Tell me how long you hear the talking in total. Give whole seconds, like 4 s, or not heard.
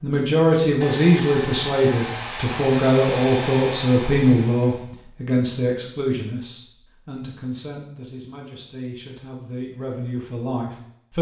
11 s.